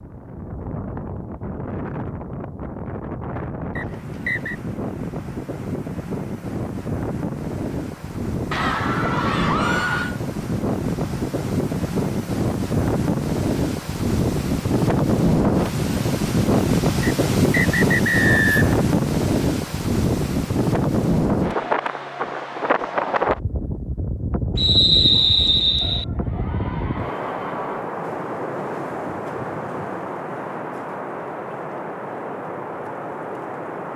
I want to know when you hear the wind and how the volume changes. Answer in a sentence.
You can hear the wind from 0.0 to 33.9 s, getting louder then quieter.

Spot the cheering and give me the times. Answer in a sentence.
The cheering can be heard from 8.5 to 10.2 s and from 25.8 to 27.8 s.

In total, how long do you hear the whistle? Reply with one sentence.
You can hear the whistle for 4 seconds altogether.